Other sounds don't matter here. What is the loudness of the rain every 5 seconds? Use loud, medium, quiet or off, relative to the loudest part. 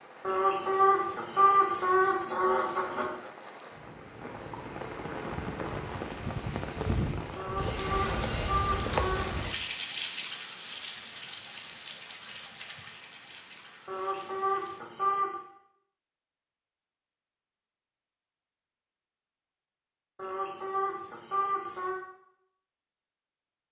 medium, loud, medium, off, off.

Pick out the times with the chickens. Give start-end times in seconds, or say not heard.
0.2-3.1, 7.3-9.4, 13.8-15.3, 20.1-22.0.